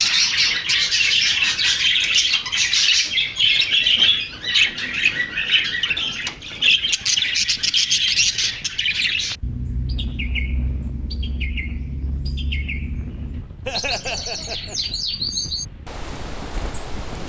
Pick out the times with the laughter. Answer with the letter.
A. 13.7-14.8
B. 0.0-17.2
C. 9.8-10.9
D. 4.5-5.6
A.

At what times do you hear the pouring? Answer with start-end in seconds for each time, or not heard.
not heard.